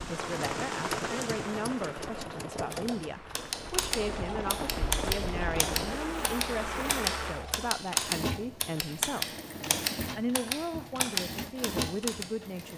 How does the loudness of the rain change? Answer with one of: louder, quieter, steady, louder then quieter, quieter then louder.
quieter then louder.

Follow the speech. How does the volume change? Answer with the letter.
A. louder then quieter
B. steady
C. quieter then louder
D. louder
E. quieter
B.